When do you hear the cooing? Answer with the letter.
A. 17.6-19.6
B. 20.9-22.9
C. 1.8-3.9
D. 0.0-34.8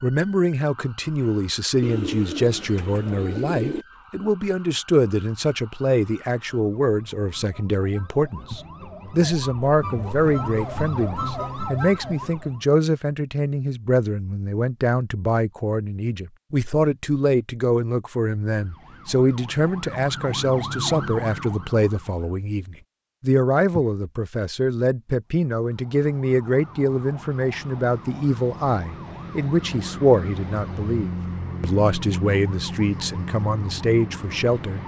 C.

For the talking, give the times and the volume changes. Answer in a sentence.
The talking can be heard from 0.0 to 34.8 s, at a steady volume.